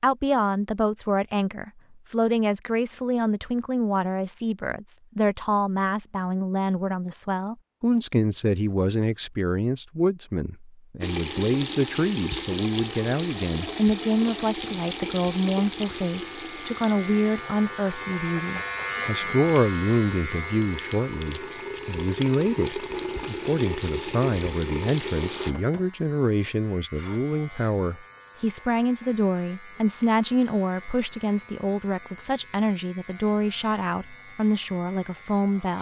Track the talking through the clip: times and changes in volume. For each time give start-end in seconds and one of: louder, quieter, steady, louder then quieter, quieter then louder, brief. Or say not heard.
0.0-35.7 steady.